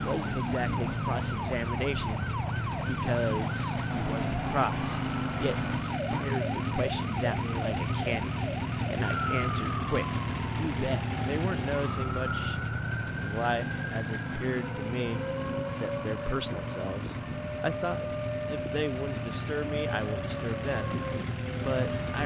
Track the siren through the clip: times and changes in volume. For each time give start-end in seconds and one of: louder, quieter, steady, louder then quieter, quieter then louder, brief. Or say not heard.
0.0-22.2 steady.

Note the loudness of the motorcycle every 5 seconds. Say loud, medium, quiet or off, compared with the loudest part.
loud, loud, loud, medium, loud.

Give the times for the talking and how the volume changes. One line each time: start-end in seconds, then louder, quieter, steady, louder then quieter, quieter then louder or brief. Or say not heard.
0.0-20.9 steady
21.6-22.2 brief.